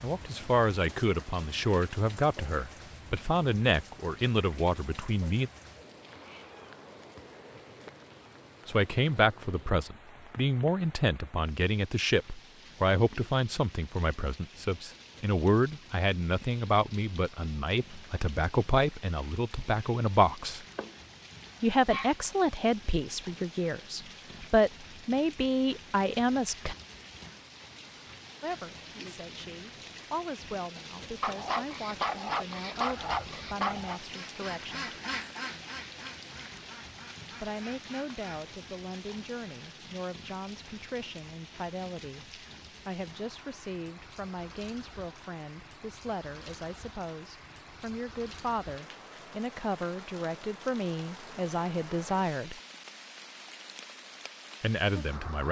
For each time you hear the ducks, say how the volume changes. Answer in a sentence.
You can hear the ducks from 33.0 to 38.5 s, getting louder then quieter.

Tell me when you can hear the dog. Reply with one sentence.
You can hear the dog from 20.8 to 22.1 s and from 31.2 to 34.0 s.